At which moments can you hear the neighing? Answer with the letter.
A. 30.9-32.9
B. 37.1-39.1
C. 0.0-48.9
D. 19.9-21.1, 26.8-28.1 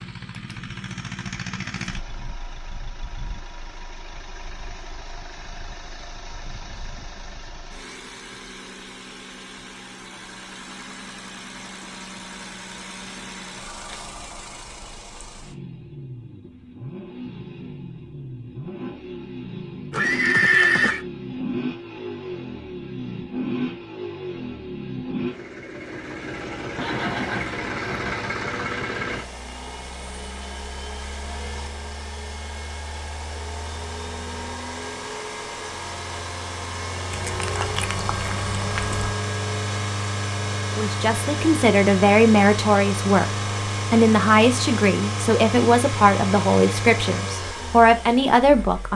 D.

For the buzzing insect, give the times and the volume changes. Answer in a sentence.
The buzzing insect can't be heard in this clip.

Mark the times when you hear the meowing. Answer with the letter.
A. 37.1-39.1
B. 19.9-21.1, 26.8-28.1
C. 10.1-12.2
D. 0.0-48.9
A.